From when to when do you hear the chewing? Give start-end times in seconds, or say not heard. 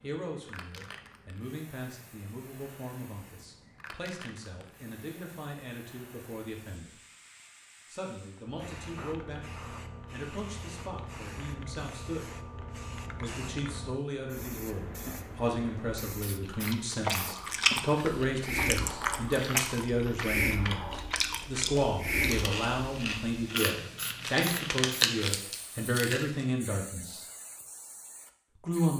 16.4-26.4.